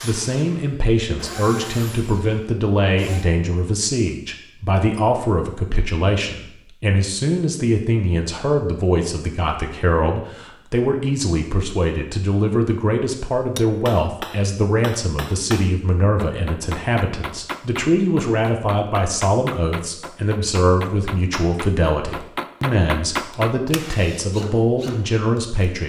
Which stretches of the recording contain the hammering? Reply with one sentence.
You can hear the hammering from 13.6 to 24.1 s.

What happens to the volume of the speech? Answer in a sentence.
The volume of the speech stays about the same.